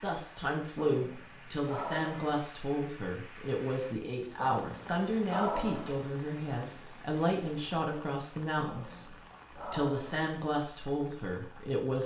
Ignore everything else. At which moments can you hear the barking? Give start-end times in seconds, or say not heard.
0.8-2.3, 4.3-6.1, 8.7-10.2.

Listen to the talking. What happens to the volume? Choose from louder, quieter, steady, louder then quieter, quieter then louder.
steady.